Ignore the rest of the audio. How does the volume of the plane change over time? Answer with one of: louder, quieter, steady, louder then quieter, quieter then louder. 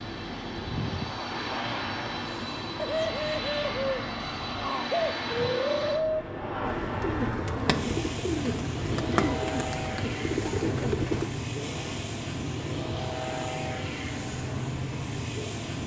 steady.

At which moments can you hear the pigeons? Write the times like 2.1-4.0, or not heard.
2.8-11.3.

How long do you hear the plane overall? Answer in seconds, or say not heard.
16 s.